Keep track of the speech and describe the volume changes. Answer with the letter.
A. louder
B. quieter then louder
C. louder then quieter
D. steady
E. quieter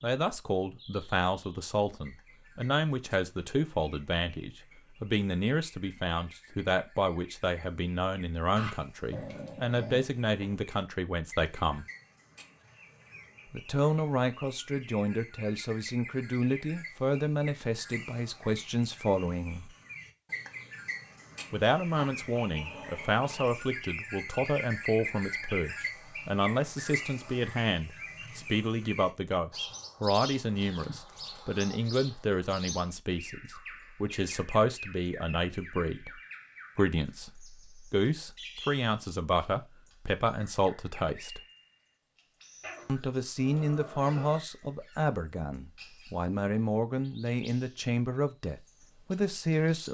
D.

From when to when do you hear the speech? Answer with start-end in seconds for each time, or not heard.
0.0-11.8, 13.5-19.7, 21.5-41.4, 42.9-49.8.